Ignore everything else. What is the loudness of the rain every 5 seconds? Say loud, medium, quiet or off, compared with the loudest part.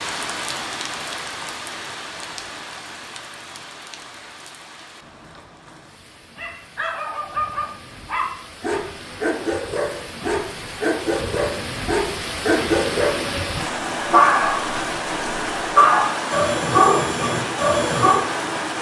medium, quiet, loud, loud.